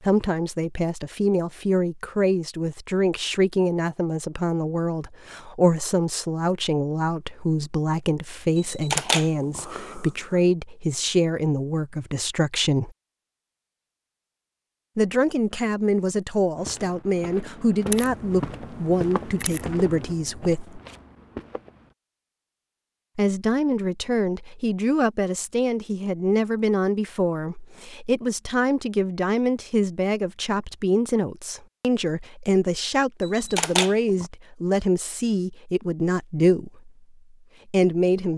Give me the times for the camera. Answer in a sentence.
You can hear the camera from 8.6 to 10.4 s, from 17.9 to 20.6 s and from 33.2 to 34.3 s.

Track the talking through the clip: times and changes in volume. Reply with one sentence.
You can hear the talking from 0.0 to 12.9 s, at a steady volume; from 14.9 to 20.8 s, at a steady volume; from 23.1 to 36.9 s, at a steady volume; and briefly from 37.6 to 38.3 s.